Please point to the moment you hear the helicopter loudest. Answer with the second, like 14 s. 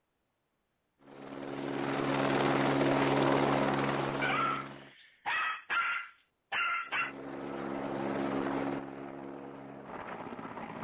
3 s.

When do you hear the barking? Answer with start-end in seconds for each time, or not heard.
4.2-7.2.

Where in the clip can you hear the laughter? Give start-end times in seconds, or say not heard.
not heard.